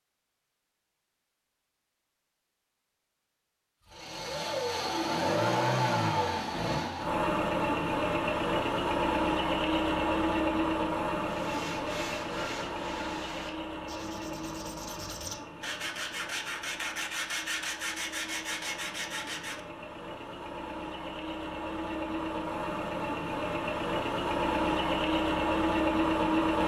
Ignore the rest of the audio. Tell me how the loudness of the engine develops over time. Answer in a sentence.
The loudness of the engine goes down, then up.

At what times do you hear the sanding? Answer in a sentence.
The sanding can be heard from 11.2 to 19.6 s.